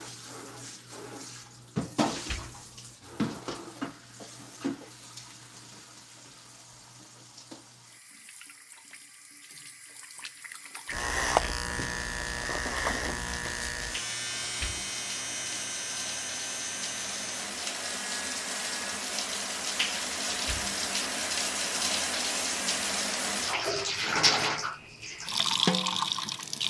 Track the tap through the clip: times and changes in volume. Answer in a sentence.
You can hear the tap from 0.0 to 26.6 s, getting quieter then louder.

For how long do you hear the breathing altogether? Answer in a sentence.
The breathing can't be heard in this clip.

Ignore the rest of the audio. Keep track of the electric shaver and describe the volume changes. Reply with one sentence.
The loudness of the electric shaver goes down.